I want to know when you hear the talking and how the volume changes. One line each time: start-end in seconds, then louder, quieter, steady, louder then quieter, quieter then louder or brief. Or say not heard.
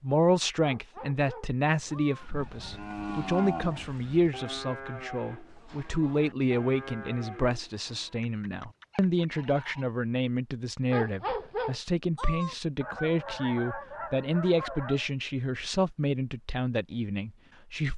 0.0-17.9 steady.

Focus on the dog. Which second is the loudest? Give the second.
11 s.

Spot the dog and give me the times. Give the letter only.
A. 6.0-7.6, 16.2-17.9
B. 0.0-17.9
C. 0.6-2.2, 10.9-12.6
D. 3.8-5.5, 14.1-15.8
C.